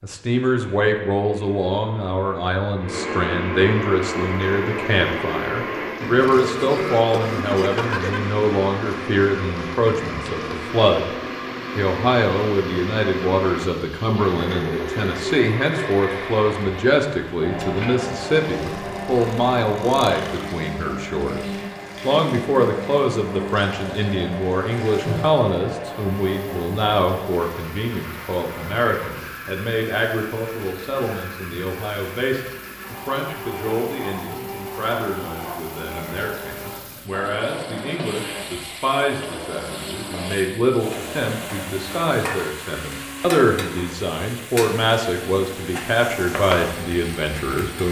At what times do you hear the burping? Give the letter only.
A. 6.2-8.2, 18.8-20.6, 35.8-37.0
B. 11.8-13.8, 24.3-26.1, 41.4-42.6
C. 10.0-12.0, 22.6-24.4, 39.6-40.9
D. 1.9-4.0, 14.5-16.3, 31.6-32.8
A.